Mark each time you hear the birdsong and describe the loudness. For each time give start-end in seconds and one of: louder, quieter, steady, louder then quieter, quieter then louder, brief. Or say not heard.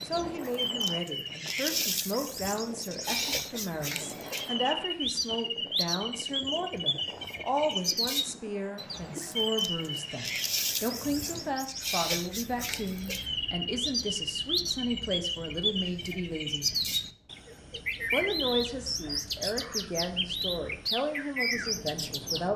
0.0-22.5 steady.